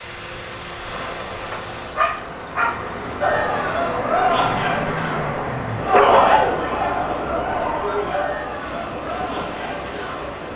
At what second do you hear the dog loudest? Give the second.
6 s.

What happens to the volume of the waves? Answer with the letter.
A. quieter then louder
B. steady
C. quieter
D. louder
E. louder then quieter
E.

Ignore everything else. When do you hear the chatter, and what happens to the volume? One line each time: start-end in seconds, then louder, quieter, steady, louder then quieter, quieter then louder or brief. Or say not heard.
3.2-10.3 quieter.